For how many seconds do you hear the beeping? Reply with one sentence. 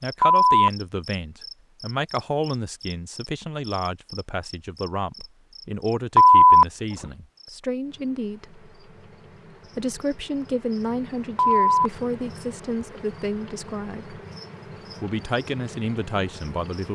The beeping can be heard for 2 seconds in total.